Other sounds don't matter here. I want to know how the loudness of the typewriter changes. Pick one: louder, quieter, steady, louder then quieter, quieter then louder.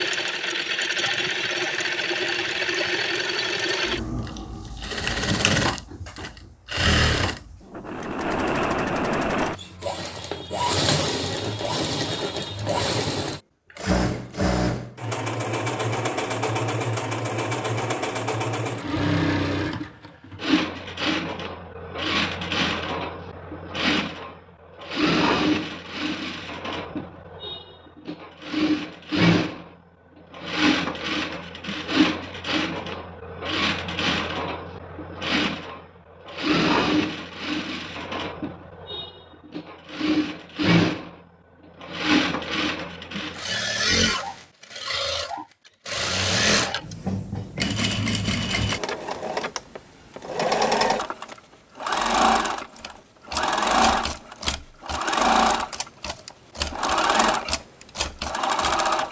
quieter then louder.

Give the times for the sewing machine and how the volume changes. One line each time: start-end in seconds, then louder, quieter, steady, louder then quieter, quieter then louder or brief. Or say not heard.
0.0-59.0 steady.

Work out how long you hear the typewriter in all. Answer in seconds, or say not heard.
6 s.